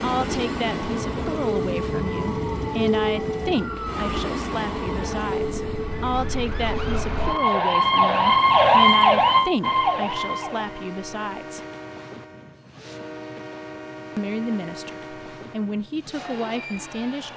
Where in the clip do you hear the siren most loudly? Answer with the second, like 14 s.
9 s.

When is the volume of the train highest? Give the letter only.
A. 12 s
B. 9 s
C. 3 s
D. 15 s
C.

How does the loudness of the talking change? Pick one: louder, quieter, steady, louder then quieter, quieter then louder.
steady.